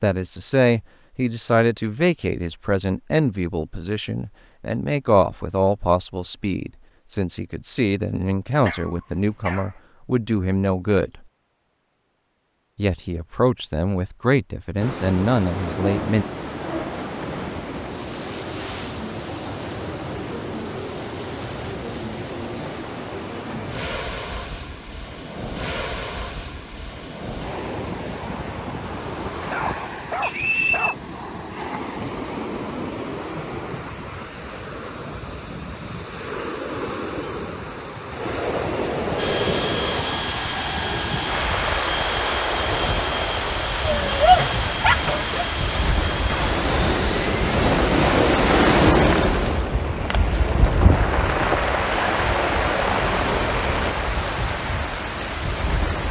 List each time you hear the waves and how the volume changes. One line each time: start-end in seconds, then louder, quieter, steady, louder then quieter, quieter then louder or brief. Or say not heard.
14.8-56.0 louder.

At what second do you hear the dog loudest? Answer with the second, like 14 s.
44 s.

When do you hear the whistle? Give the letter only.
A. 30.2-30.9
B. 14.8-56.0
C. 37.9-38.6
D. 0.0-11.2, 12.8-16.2
A.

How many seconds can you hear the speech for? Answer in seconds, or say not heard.
15 s.